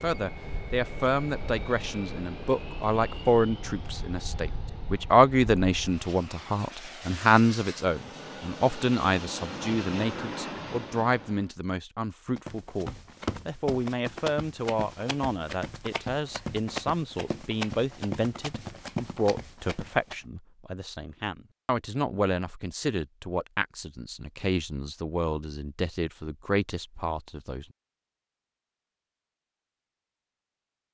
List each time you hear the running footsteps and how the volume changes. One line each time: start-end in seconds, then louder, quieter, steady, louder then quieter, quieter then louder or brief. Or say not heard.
12.3-20.1 steady.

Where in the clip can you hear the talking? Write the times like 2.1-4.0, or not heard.
0.0-27.6.